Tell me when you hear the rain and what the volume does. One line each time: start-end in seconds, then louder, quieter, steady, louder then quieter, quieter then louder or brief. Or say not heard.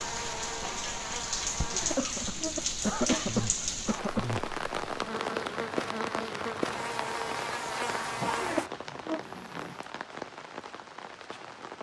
0.0-11.7 quieter.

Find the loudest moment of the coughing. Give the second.
3 s.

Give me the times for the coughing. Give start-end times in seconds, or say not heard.
1.6-4.2, 8.2-9.0.